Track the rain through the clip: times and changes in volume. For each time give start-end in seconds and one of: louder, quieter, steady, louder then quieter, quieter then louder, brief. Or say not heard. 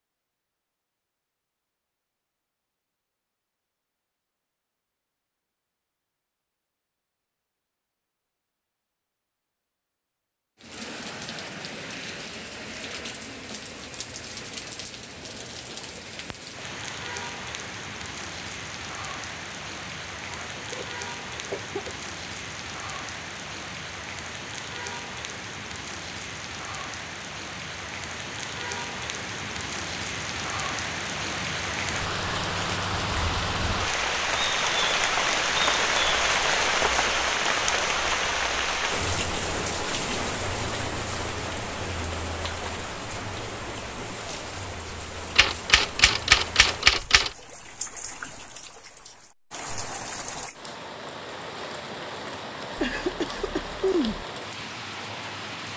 10.6-55.7 louder then quieter.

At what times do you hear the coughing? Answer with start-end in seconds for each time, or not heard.
20.3-21.9, 52.8-54.2.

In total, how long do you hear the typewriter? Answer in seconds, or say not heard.
2 s.